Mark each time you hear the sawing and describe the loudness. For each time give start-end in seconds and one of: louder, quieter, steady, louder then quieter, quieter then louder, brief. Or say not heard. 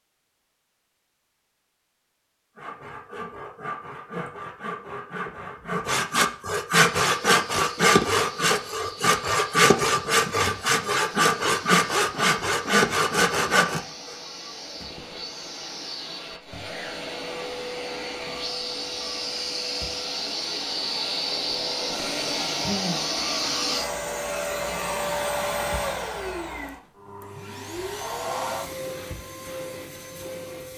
2.5-14.2 louder.